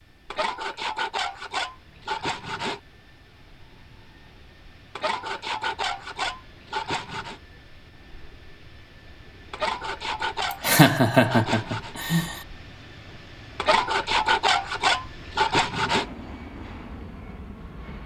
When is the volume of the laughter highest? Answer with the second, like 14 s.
11 s.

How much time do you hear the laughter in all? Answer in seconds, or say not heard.
2 s.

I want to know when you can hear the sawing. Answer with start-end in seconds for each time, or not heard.
0.3-2.8, 5.0-7.4, 9.5-11.9, 13.6-16.1.